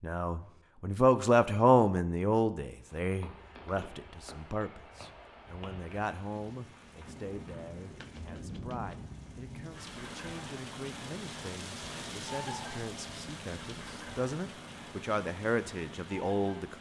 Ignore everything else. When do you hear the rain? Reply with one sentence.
The rain can be heard from 2.6 to 16.7 s.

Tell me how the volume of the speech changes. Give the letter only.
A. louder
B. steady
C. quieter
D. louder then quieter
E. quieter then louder
E.